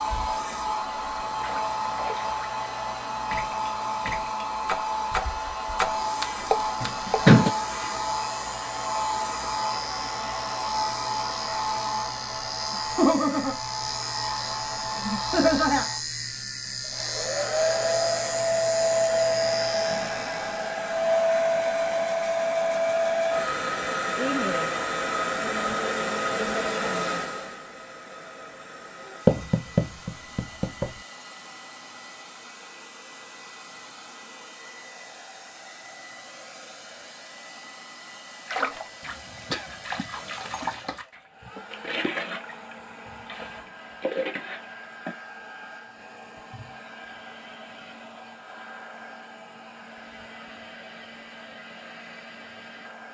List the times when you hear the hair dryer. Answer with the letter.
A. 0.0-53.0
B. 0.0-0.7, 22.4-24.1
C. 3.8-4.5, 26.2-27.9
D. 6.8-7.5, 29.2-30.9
A.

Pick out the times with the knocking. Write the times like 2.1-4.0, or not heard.
6.8-7.5, 29.2-30.9.